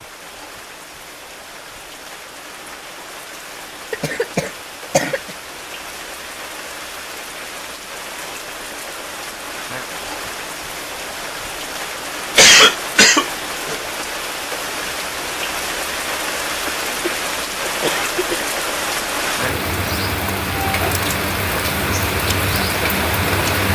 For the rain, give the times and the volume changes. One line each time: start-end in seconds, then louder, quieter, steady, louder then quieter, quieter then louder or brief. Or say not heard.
0.0-23.7 louder.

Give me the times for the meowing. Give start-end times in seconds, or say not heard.
not heard.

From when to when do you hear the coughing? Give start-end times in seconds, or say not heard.
3.9-5.2, 12.3-13.8, 16.6-18.4.